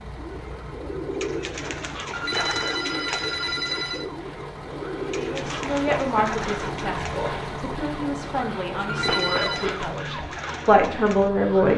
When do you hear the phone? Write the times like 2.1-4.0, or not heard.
2.1-4.0, 8.8-9.8.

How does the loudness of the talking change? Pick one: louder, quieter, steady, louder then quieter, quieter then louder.
quieter then louder.